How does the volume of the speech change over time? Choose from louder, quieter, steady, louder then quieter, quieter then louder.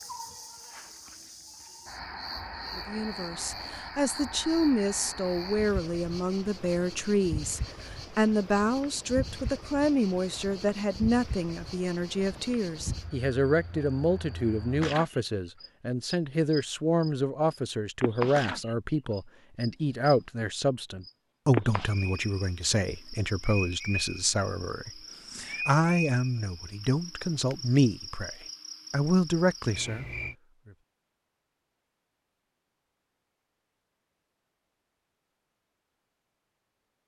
steady.